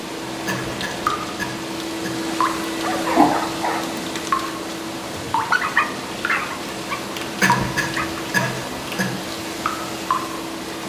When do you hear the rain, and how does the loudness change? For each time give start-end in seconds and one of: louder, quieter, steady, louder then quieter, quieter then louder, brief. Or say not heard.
0.0-10.8 steady.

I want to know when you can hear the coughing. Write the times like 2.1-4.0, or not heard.
0.5-2.2, 7.4-9.2.